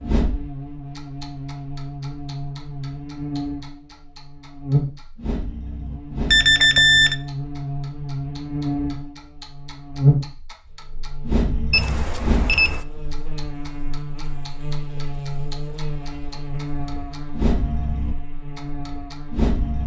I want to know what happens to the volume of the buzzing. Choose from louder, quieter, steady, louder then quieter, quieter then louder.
louder then quieter.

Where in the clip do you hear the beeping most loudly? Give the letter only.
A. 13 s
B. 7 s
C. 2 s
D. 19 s
B.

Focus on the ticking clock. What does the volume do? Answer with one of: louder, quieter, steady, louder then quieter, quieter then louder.
louder.